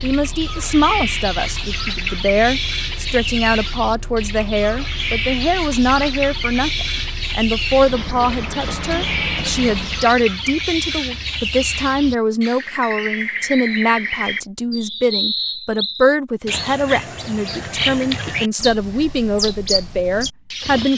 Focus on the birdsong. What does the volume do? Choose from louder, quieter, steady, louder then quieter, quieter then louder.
steady.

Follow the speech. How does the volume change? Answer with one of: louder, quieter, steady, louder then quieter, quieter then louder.
steady.